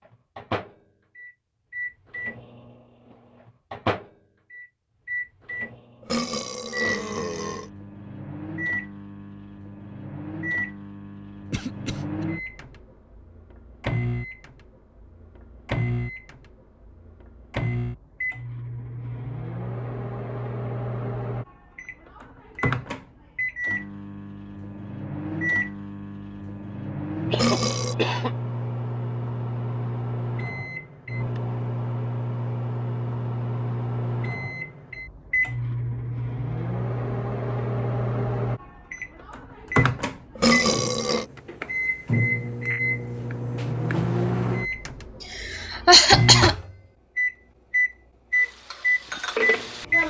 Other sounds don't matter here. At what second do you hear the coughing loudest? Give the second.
46 s.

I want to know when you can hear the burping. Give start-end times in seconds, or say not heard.
6.0-7.7, 27.3-27.9, 40.4-41.2.